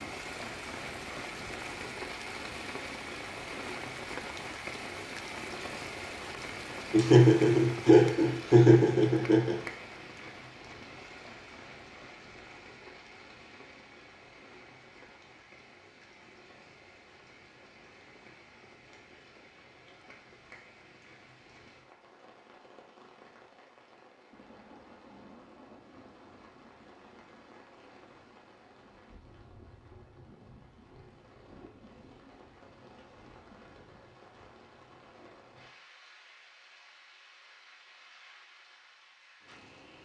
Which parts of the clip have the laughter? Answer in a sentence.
The laughter can be heard from 6.9 to 9.6 s.